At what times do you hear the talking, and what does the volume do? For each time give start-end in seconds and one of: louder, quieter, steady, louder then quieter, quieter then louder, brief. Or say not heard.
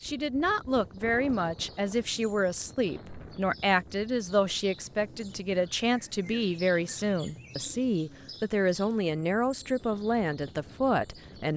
0.0-11.5 steady.